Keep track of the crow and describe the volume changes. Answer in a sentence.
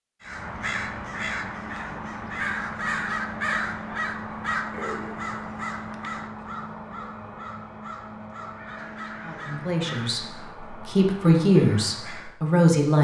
The volume of the crow goes down.